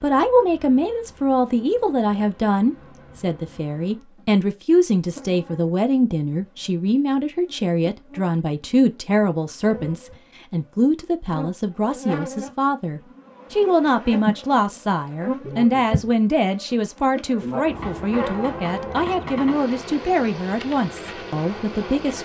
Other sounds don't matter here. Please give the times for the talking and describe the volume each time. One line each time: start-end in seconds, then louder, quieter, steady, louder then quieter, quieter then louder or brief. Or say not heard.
0.0-22.2 steady.